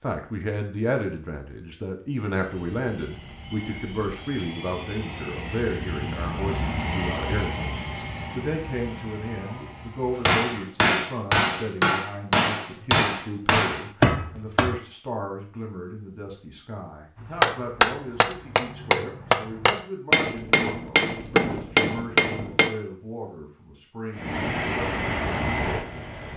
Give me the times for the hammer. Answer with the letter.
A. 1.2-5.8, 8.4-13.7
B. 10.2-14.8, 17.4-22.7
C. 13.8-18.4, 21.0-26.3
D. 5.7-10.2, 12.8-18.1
B.